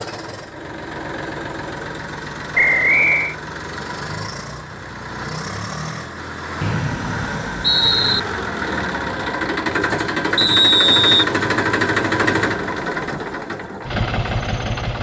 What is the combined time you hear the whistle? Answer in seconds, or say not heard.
3 s.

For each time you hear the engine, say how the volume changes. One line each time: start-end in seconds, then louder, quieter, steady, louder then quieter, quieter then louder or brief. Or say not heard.
0.0-14.9 louder.